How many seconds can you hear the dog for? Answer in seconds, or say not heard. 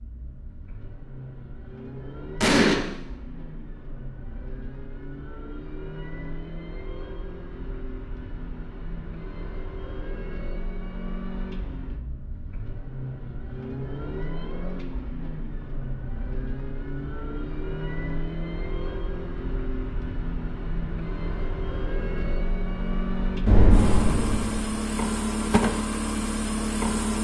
not heard.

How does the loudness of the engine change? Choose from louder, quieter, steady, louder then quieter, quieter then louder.
louder.